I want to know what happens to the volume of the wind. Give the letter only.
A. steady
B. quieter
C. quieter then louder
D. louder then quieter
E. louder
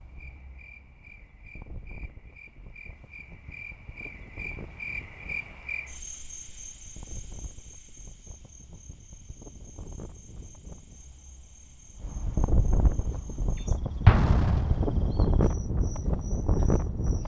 E.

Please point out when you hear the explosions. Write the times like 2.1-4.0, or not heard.
14.1-15.3.